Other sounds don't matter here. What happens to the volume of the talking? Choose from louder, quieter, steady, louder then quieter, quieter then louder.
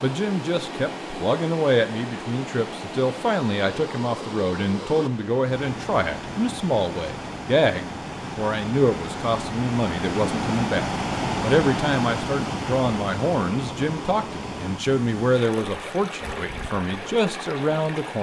steady.